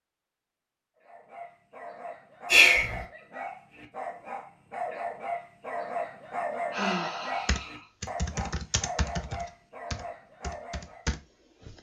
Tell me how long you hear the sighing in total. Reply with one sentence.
You can hear the sighing for 2 seconds altogether.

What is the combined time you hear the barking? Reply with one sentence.
You can hear the barking for 10 seconds altogether.